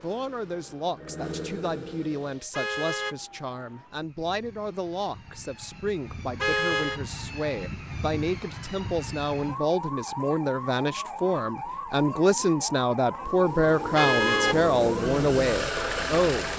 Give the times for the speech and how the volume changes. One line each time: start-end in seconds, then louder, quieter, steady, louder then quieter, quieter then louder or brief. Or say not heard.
0.0-16.5 louder.